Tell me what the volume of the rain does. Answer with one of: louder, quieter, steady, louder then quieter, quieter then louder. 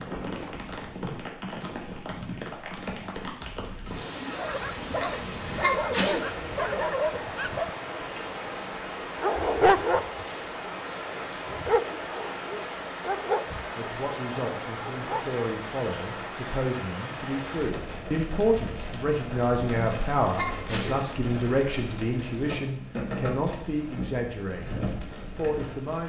steady.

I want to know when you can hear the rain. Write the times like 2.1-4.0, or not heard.
0.0-26.0.